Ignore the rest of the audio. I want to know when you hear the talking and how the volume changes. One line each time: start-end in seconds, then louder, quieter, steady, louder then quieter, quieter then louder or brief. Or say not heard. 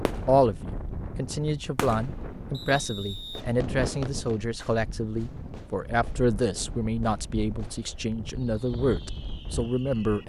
0.2-10.2 steady.